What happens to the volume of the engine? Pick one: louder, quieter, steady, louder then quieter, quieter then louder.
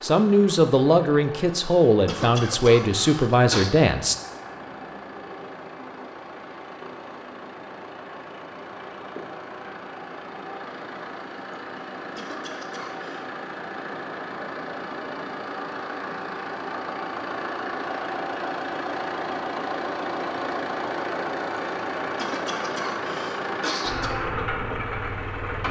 louder.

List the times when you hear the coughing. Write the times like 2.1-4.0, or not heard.
1.9-3.7, 11.9-13.2, 22.1-24.1.